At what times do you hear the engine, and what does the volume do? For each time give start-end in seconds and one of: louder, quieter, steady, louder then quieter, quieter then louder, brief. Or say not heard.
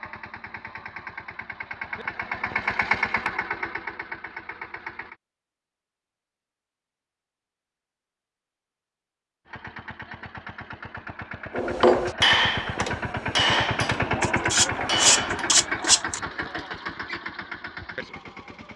0.0-5.2 louder then quieter
9.4-18.7 louder then quieter.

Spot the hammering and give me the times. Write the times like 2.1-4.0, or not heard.
11.6-15.5.